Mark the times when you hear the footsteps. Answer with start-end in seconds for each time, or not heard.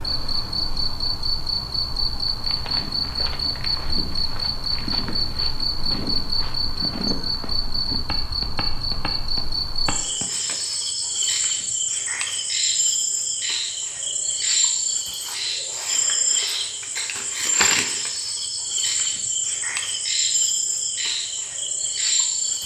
2.2-10.7.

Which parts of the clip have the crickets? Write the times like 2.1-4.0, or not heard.
0.0-22.6.